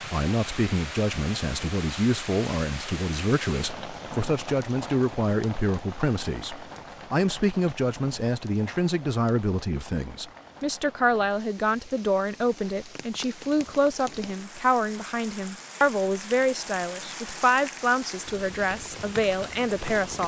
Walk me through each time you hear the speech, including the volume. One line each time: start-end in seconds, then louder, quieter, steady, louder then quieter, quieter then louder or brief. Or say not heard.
0.1-20.2 steady.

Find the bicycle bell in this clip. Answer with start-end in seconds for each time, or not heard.
not heard.